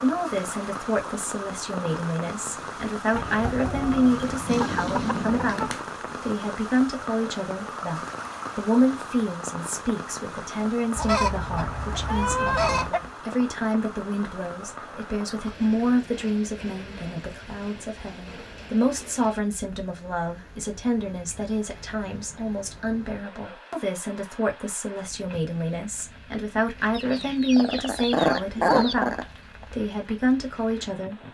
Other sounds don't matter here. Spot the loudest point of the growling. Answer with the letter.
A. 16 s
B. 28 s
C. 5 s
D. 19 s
B.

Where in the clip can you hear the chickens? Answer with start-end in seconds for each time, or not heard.
3.1-5.7, 10.9-13.1, 26.9-28.9.